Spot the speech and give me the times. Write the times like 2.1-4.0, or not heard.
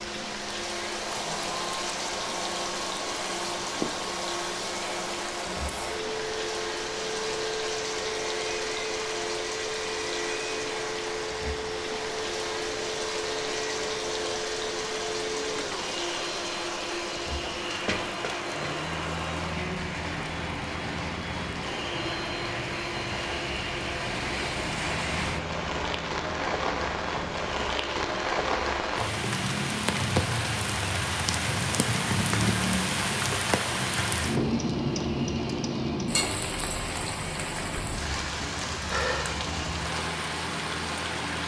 not heard.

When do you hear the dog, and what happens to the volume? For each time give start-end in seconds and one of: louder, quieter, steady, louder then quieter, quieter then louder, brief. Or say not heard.
not heard.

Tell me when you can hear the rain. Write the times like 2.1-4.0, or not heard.
0.0-41.4.